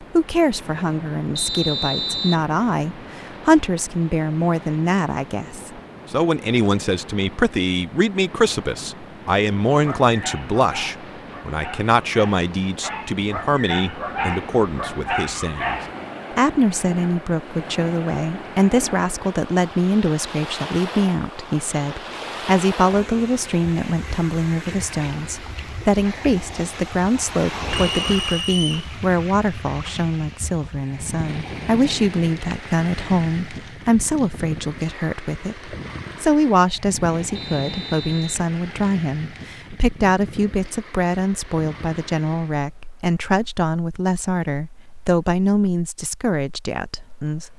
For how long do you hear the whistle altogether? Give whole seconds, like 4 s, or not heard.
3 s.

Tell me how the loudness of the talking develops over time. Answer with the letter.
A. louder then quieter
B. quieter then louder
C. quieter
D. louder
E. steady
E.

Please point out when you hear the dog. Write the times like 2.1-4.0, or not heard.
9.8-15.9.